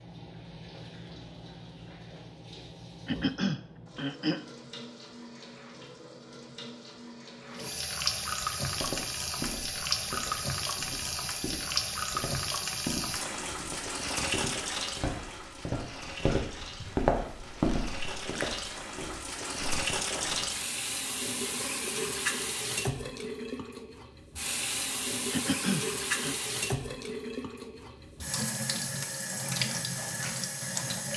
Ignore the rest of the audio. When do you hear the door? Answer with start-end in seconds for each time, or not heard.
not heard.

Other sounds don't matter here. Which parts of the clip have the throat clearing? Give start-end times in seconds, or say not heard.
3.0-4.5, 25.3-26.4.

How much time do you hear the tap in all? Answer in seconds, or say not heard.
31 s.